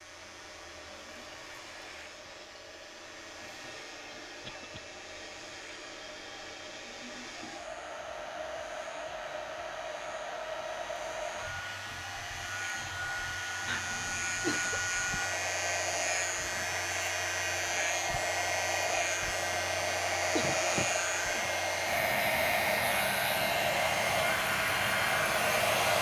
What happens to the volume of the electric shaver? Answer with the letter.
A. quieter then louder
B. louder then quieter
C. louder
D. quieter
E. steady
C.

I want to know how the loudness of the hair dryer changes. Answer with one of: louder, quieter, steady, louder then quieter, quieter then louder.
louder.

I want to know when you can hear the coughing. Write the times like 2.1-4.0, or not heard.
4.4-4.8, 13.7-14.8, 20.3-21.5.